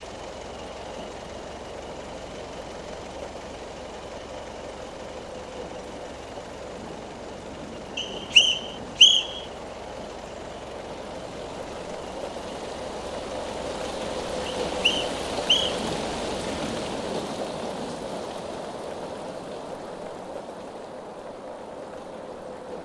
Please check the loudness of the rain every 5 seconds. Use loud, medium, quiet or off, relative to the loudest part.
medium, medium, loud, loud, medium.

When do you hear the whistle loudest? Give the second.
9 s.